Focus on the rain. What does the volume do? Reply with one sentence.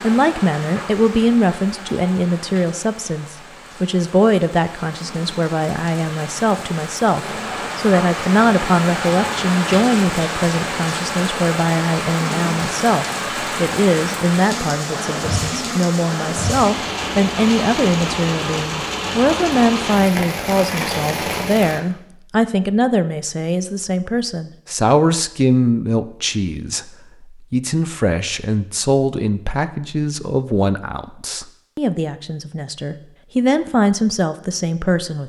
The loudness of the rain goes up.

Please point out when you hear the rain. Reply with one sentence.
The rain can be heard from 0.0 to 21.8 s.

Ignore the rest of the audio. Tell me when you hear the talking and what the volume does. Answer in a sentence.
The talking can be heard from 0.0 to 35.2 s, at a steady volume.